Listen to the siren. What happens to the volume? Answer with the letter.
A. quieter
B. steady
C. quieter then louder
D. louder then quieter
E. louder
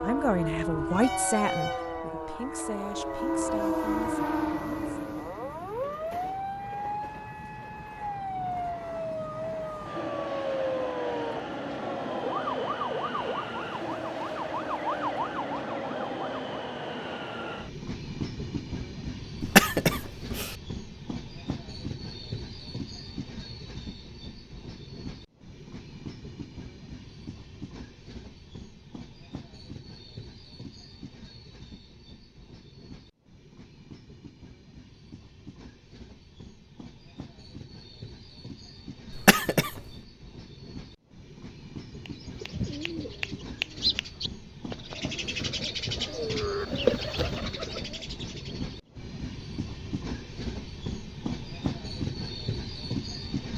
B.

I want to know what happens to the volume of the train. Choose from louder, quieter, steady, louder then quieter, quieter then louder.
quieter then louder.